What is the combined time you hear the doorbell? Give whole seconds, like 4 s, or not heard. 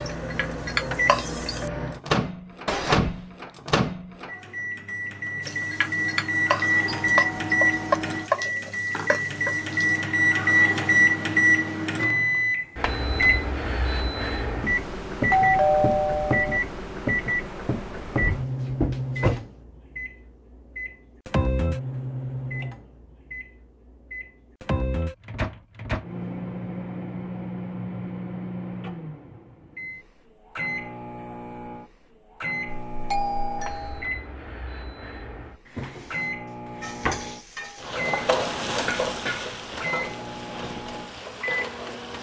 4 s.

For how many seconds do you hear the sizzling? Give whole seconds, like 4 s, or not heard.
12 s.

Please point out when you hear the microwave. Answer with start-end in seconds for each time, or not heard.
0.0-42.1.